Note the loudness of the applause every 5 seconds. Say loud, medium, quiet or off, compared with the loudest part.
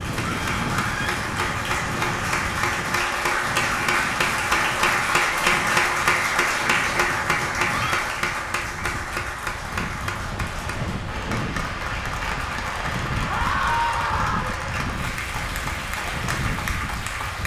loud, loud, medium, medium.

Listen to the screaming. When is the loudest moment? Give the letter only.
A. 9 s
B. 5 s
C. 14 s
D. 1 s
C.